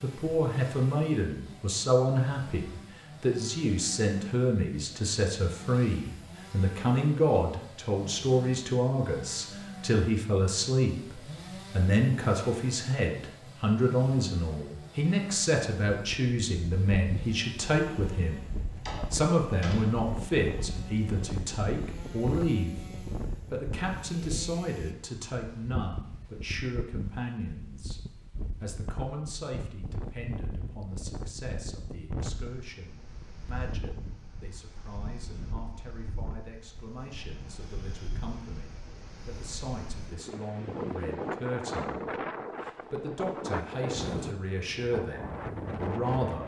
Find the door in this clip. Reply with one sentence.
You can hear the door from 18.7 to 19.9 s.